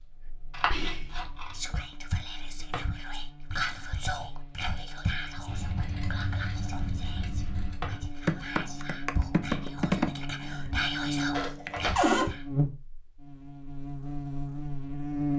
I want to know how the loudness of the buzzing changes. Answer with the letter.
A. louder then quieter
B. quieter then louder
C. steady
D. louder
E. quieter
D.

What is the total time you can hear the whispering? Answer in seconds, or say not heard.
12 s.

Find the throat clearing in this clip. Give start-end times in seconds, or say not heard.
not heard.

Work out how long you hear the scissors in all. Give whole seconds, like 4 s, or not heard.
4 s.